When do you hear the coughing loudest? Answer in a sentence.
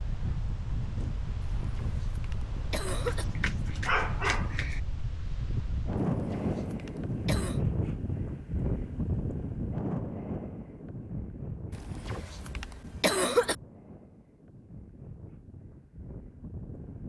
The loudest moment of the coughing is at 13 seconds.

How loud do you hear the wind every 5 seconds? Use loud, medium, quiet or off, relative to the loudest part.
medium, loud, medium, quiet.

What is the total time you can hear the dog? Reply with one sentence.
You can hear the dog for 2 seconds altogether.